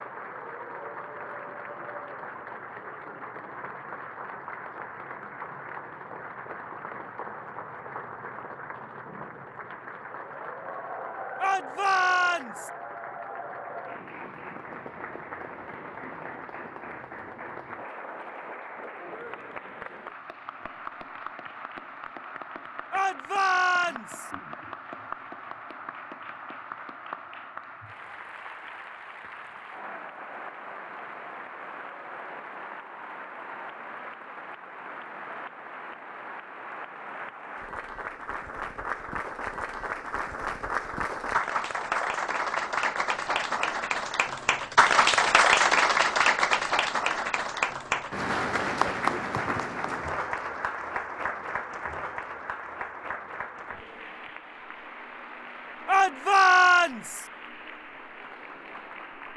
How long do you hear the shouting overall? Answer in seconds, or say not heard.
4 s.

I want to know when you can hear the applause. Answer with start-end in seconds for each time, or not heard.
0.0-59.3.